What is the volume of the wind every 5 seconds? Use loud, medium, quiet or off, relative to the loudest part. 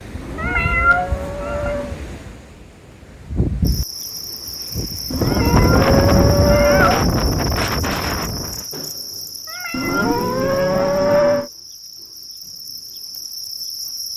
medium, loud, off.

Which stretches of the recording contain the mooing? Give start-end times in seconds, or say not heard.
0.1-2.0, 5.1-7.1, 9.7-11.5.